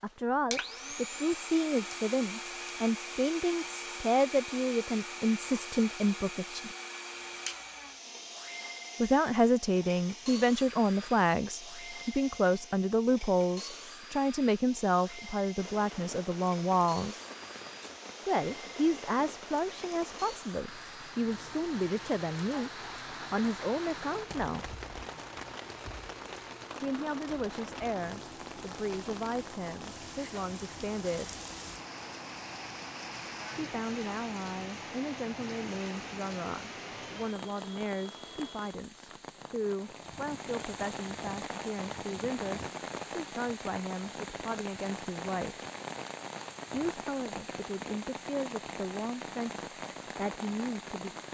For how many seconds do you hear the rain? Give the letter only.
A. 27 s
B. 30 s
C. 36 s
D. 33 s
C.